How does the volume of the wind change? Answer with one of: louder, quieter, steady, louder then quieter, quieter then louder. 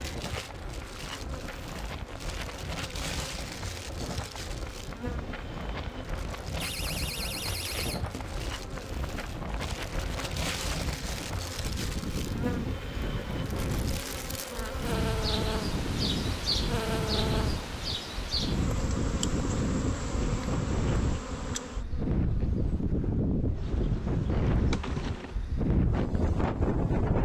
louder.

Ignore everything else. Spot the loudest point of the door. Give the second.
7 s.